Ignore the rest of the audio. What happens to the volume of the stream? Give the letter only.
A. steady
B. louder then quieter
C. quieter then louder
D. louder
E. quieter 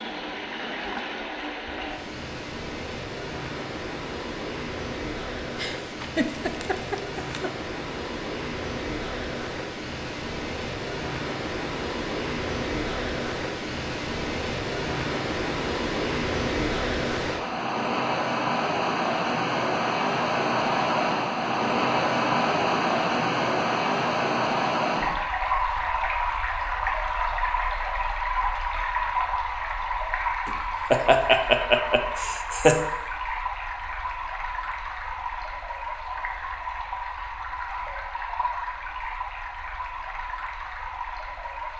B.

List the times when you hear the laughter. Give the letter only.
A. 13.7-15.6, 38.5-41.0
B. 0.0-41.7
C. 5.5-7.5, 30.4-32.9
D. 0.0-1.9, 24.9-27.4
C.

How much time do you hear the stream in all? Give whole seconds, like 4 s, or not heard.
42 s.